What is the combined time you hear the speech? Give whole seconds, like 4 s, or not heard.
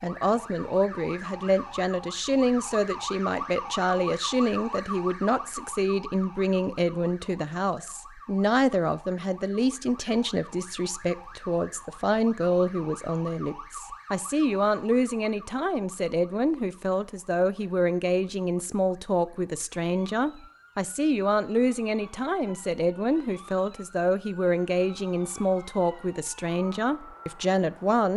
28 s.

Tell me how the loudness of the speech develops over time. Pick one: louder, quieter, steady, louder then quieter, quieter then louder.
steady.